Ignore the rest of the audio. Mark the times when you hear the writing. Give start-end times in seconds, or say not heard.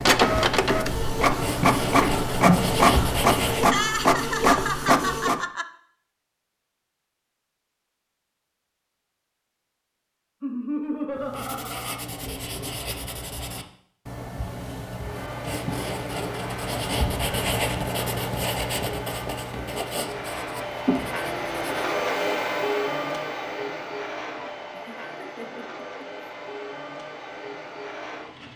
0.0-3.8, 11.2-21.9.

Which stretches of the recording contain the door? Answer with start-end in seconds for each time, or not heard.
not heard.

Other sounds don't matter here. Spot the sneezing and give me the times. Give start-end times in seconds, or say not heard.
2.0-2.6.